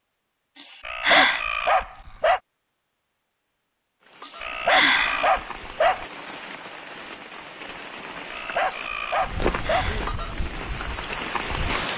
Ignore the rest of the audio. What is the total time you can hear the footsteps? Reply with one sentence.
You can hear the footsteps for 3 seconds altogether.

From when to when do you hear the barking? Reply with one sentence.
You can hear the barking from 0.8 to 2.4 s, from 4.4 to 6.0 s and from 8.3 to 9.9 s.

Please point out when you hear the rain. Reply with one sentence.
The rain can be heard from 4.0 to 11.9 s.